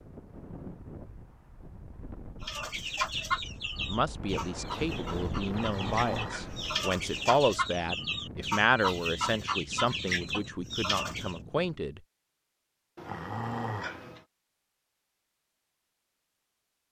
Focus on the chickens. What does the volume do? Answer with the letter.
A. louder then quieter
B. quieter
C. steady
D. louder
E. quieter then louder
E.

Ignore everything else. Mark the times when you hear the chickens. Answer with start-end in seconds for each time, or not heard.
2.4-11.4.